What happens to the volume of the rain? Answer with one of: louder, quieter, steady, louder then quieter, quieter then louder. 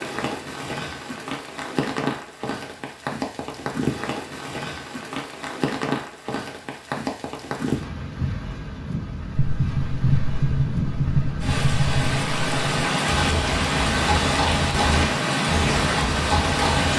louder.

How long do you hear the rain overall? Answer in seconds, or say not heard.
17 s.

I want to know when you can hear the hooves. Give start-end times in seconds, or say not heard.
9.3-16.9.